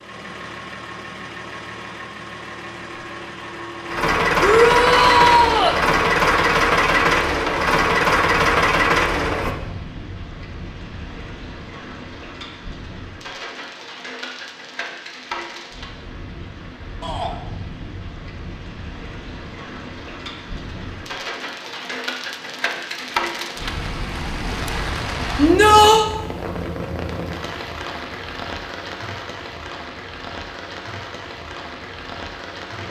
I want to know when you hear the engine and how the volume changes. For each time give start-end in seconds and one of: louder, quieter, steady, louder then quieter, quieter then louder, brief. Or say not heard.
0.0-9.6 louder.